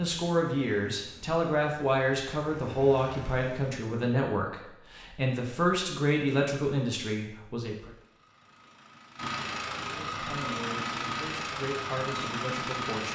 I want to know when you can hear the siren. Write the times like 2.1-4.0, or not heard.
not heard.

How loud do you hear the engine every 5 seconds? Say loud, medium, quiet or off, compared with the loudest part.
quiet, medium, loud.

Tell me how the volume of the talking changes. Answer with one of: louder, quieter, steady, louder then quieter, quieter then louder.
quieter.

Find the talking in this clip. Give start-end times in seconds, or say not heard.
0.0-7.9, 10.1-13.1.